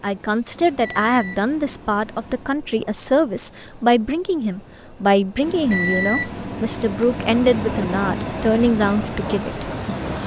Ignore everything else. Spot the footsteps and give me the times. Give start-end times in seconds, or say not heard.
not heard.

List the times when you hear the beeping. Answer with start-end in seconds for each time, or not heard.
0.5-2.5, 5.4-8.0.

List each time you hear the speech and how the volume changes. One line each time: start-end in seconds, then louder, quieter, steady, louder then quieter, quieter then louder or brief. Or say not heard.
0.0-9.7 steady.